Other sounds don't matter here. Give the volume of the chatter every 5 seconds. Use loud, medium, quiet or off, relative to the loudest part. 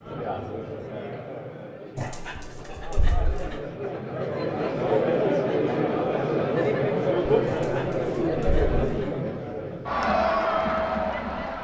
medium, loud, loud.